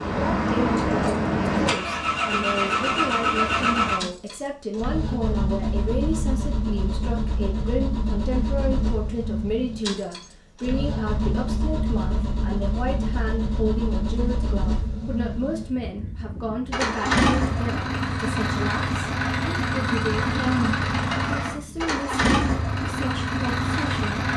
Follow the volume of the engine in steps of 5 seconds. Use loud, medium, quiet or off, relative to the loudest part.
loud, medium, medium, loud, loud.